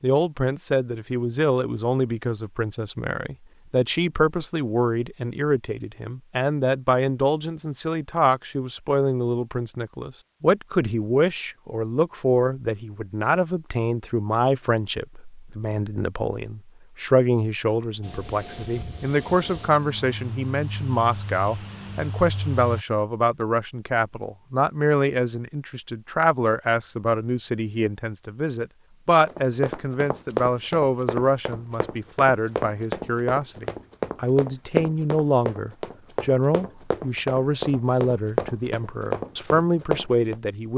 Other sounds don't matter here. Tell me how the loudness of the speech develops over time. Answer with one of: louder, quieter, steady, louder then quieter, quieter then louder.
steady.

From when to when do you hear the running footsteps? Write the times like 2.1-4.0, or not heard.
29.2-40.4.